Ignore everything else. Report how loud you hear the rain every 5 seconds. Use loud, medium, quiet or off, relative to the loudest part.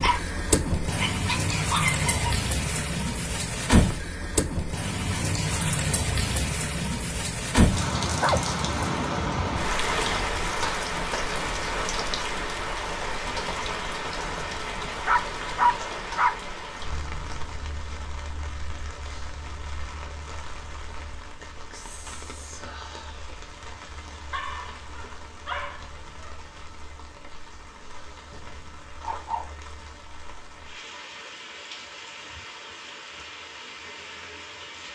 loud, loud, loud, medium, quiet, quiet, quiet.